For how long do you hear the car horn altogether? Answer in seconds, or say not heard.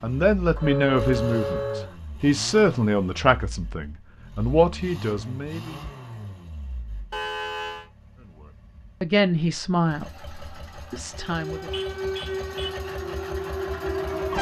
3 s.